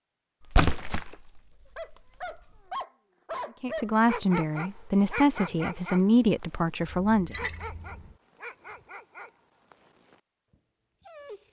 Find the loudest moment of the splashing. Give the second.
1 s.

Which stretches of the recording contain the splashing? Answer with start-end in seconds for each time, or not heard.
0.5-1.9, 7.0-8.2.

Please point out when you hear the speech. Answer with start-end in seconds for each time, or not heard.
3.6-7.3.